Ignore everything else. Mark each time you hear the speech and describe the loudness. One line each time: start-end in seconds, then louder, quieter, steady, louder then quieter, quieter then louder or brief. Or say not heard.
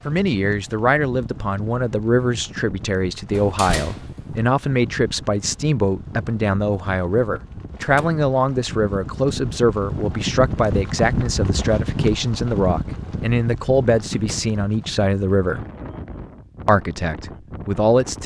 0.1-15.7 steady
16.6-18.2 brief.